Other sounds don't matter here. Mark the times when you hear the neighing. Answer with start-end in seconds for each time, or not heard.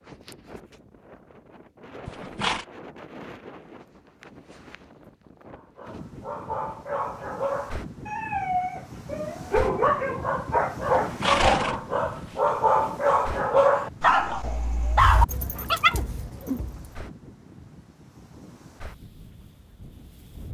2.0-2.6, 11.0-12.5.